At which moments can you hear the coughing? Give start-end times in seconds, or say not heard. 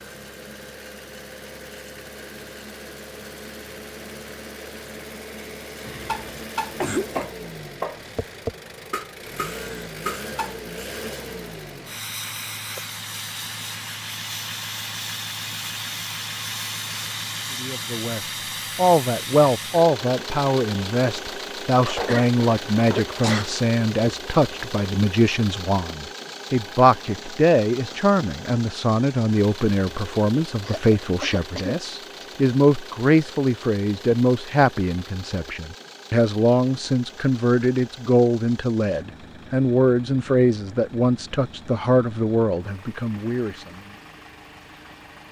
5.8-7.2, 21.8-23.4, 30.6-32.2.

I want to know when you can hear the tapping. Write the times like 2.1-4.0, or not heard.
6.0-10.6.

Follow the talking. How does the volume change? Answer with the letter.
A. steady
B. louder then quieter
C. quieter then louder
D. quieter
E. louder
A.